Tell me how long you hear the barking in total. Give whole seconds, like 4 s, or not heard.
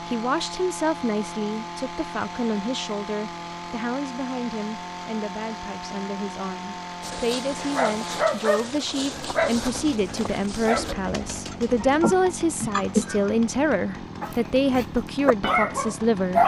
6 s.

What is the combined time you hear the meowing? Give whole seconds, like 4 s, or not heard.
2 s.